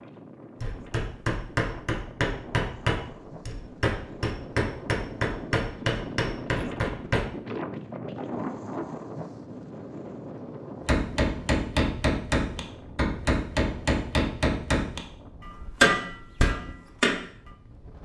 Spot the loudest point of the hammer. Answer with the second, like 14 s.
16 s.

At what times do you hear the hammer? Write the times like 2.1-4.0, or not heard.
0.6-7.3, 10.8-17.2.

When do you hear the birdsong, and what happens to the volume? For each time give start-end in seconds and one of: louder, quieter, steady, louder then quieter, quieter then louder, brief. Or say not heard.
not heard.